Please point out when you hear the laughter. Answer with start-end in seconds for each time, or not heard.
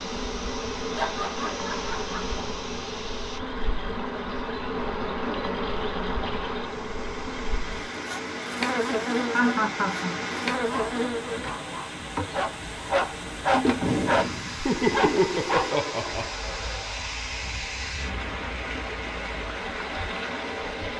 0.9-2.2, 9.3-10.2, 14.6-16.3.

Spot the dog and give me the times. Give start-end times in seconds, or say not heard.
10.6-15.7.